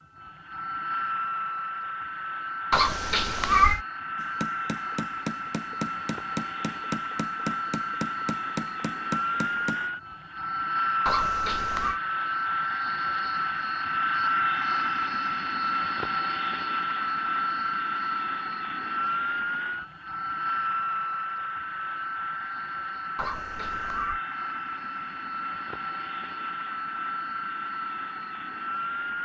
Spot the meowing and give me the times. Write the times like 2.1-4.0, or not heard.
2.7-3.8, 11.1-12.0, 23.1-24.2.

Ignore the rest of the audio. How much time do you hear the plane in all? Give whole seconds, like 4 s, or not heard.
29 s.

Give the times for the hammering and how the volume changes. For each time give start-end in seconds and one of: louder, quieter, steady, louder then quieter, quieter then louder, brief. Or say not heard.
4.2-9.8 steady.